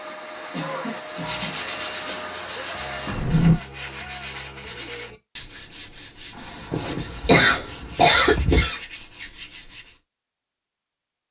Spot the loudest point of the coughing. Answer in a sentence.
The volume of the coughing peaks at 8 seconds.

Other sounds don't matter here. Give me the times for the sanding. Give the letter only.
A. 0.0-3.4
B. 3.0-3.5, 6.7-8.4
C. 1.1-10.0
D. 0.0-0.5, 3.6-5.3
C.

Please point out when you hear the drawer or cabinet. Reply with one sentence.
You can hear the drawer or cabinet from 3.0 to 3.5 s and from 6.7 to 8.4 s.